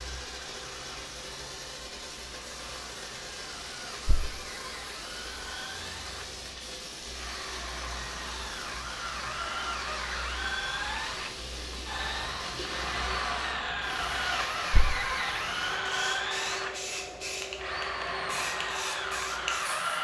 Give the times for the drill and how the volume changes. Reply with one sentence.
You can hear the drill from 0.0 to 19.9 s, getting louder.